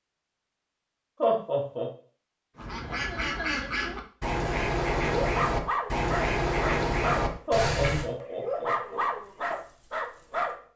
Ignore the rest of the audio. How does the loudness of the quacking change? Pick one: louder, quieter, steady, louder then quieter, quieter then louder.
steady.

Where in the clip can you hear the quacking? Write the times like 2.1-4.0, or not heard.
2.5-8.1.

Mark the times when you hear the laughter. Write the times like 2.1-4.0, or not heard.
1.2-1.9, 7.5-9.1.